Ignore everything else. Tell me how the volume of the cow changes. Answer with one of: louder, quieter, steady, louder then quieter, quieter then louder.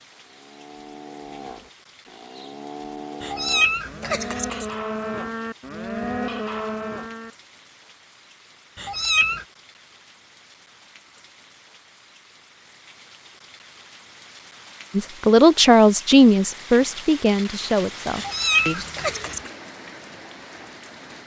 louder.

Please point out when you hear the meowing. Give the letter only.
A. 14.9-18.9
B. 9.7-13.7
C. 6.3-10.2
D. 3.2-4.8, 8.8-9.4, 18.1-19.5
D.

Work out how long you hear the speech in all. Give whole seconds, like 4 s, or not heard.
4 s.